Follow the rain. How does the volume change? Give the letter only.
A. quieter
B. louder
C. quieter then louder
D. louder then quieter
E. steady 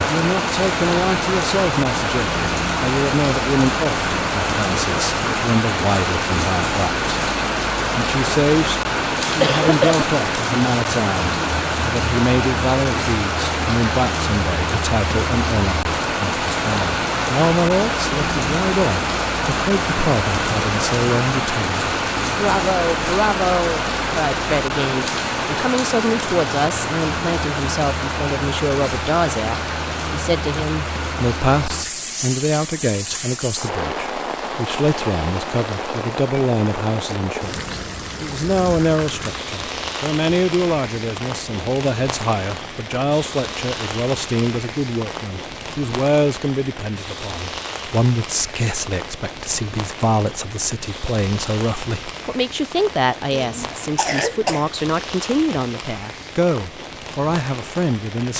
A.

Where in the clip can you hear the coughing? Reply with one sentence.
The coughing can be heard from 9.4 to 10.1 s and from 53.3 to 54.7 s.